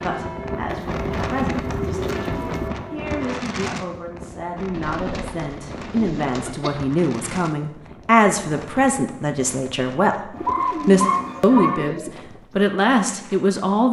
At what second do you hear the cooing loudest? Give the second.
11 s.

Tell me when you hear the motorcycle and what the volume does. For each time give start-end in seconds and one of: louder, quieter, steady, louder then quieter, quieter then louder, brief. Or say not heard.
not heard.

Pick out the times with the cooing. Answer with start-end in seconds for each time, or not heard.
0.7-2.7, 4.8-6.7, 10.3-12.1.